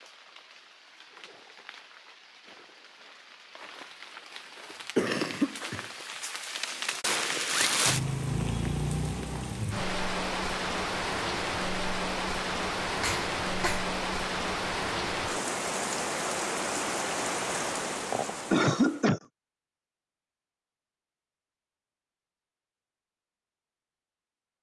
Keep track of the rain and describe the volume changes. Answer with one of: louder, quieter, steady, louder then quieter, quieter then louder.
louder.